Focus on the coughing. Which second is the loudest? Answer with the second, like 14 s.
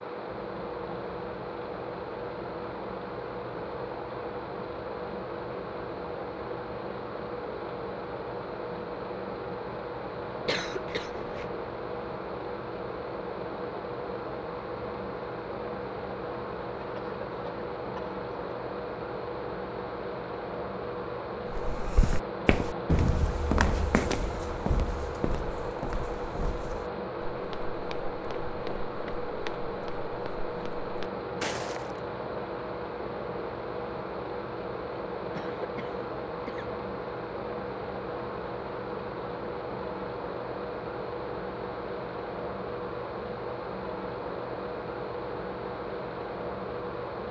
11 s.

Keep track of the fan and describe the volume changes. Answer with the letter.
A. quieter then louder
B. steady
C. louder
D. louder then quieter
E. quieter
B.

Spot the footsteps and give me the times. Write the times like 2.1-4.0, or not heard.
21.5-32.0.